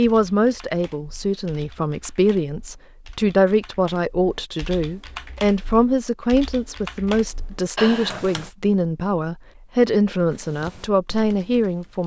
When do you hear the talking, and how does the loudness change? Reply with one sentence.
You can hear the talking from 0.0 to 12.0 s, at a steady volume.